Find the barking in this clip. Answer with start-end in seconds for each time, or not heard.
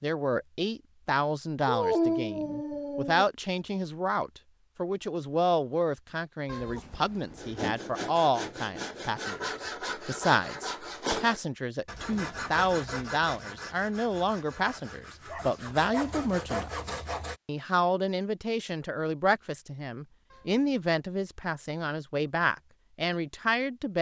1.6-3.2, 15.3-17.3.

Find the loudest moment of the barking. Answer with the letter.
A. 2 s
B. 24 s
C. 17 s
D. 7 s
A.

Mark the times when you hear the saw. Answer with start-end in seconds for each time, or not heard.
7.3-17.4.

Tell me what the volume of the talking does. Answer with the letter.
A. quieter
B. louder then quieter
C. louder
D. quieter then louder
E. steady
E.